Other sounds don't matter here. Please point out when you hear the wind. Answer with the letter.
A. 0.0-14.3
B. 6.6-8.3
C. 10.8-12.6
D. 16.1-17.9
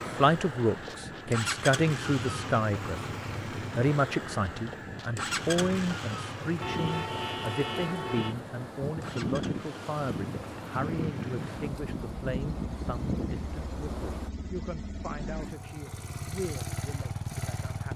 A.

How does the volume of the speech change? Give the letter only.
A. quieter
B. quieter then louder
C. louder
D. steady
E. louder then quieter
A.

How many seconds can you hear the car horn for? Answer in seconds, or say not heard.
2 s.